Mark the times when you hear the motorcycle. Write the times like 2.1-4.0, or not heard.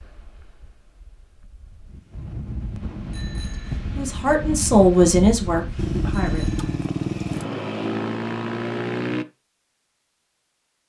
5.8-9.2.